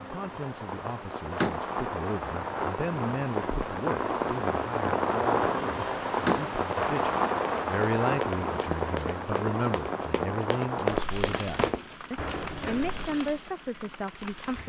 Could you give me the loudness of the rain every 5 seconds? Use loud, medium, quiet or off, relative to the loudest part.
loud, loud, medium.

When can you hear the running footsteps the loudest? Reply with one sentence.
The volume of the running footsteps peaks at 11 seconds.